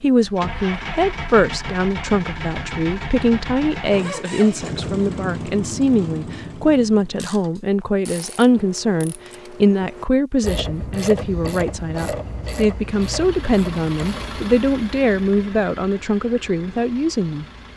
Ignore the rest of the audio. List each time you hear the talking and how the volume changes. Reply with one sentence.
You can hear the talking from 0.0 to 17.4 s, at a steady volume.